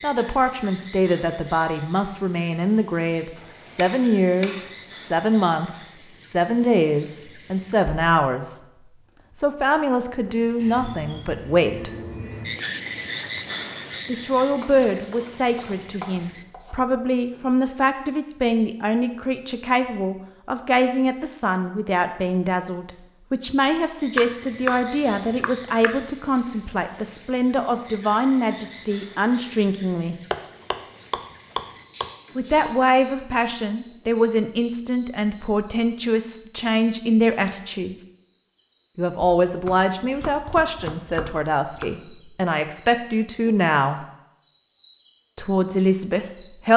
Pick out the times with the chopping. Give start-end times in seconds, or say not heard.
3.4-5.2, 14.6-16.9, 24.1-26.0, 30.3-32.1, 39.2-41.9.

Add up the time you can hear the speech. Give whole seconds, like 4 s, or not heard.
39 s.